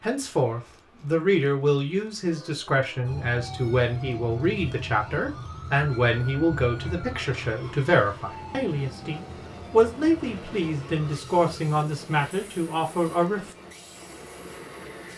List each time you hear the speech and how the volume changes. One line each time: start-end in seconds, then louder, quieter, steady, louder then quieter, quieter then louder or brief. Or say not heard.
0.0-13.5 steady.